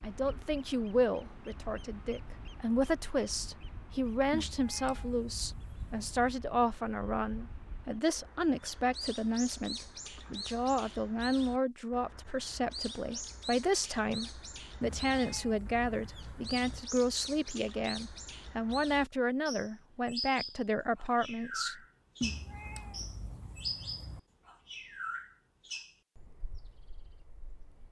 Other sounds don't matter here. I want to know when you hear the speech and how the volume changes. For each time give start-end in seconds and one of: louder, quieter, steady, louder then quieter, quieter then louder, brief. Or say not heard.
0.0-21.8 steady.